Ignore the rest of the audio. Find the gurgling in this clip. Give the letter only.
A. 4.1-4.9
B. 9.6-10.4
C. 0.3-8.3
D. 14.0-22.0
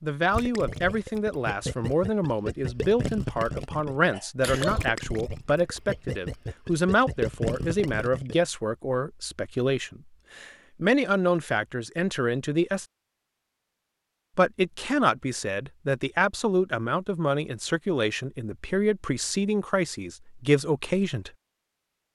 C.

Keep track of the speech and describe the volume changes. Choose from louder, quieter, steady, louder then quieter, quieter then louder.
steady.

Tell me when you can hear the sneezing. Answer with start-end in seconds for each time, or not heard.
4.1-4.9.